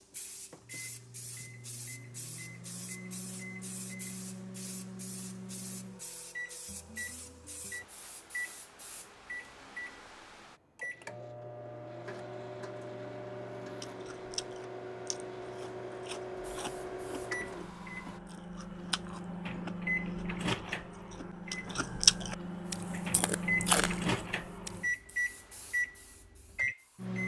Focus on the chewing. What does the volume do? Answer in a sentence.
The loudness of the chewing goes up.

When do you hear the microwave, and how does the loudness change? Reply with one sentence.
The microwave can be heard from 0.0 to 27.2 s, getting louder.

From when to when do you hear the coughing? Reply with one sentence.
You can't hear the coughing here.